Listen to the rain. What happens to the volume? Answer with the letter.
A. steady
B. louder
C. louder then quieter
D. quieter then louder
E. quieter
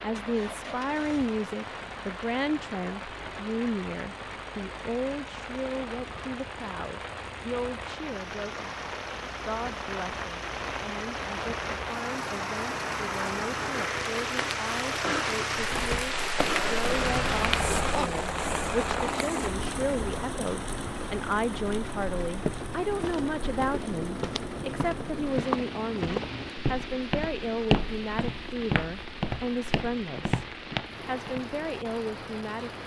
C.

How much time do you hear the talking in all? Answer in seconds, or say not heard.
31 s.